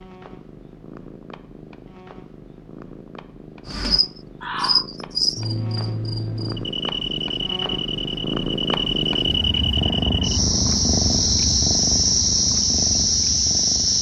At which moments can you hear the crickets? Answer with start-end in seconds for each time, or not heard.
3.6-13.9.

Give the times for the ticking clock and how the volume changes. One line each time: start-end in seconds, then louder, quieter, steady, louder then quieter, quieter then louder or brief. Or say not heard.
not heard.